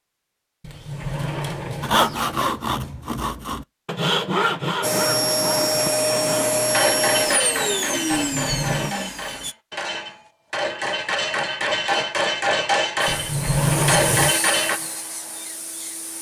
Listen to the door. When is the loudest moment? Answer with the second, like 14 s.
14 s.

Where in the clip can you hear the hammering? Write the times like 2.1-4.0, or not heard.
6.7-14.8.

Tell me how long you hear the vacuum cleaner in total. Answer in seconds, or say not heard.
8 s.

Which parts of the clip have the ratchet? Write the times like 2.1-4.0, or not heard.
not heard.